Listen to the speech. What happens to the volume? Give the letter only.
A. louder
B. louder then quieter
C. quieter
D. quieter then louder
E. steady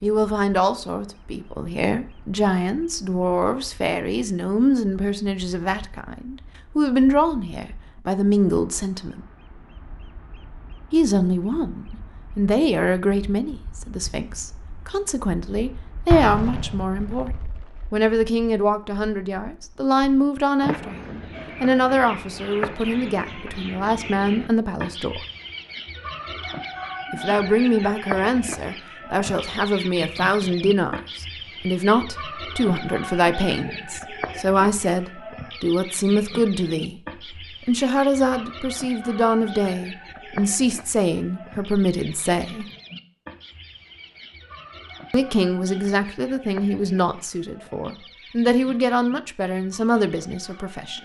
E.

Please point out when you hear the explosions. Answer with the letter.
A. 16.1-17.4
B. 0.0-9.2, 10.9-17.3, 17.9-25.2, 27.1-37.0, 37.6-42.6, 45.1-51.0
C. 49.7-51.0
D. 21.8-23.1
A.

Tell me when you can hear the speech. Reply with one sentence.
You can hear the speech from 0.0 to 9.2 s, from 10.9 to 17.3 s, from 17.9 to 25.2 s, from 27.1 to 37.0 s, from 37.6 to 42.6 s and from 45.1 to 51.0 s.